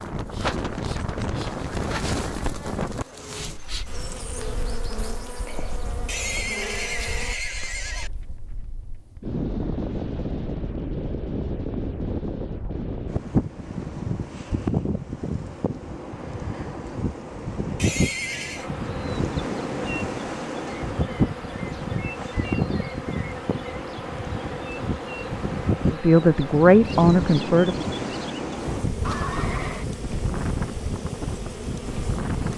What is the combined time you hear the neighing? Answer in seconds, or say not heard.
4 s.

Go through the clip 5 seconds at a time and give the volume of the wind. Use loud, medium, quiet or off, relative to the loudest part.
loud, medium, loud, loud, loud, loud, loud.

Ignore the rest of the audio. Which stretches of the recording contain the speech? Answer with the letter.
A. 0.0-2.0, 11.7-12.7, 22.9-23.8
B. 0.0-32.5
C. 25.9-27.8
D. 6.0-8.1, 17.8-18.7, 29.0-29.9
C.